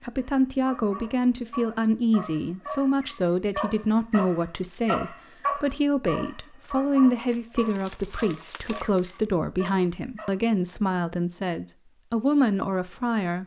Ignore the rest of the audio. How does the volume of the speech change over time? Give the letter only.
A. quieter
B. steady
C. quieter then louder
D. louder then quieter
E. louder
B.